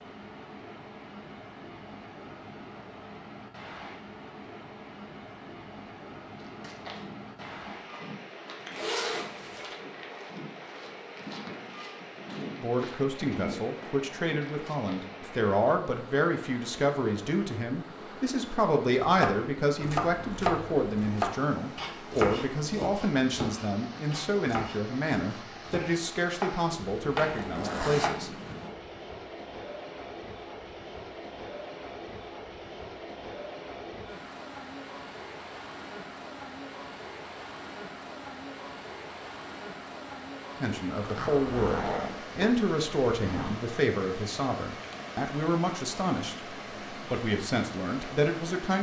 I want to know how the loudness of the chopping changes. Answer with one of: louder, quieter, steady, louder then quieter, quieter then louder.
quieter then louder.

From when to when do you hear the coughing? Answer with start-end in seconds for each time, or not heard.
not heard.